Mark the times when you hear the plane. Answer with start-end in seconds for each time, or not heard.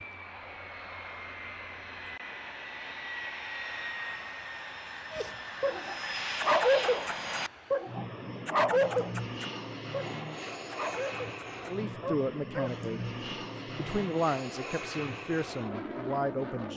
0.0-16.7.